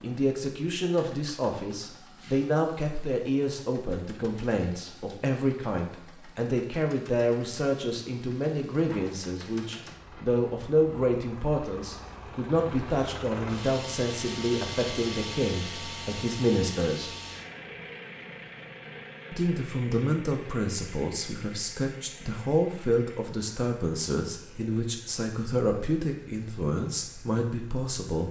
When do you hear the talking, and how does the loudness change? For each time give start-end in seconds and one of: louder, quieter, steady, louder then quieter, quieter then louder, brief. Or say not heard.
0.0-17.1 steady
19.3-28.2 steady.